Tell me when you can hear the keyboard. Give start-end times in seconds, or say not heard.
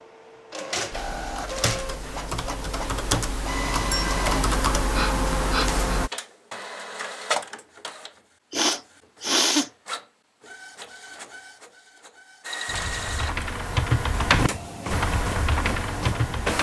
0.9-6.1, 12.7-16.5.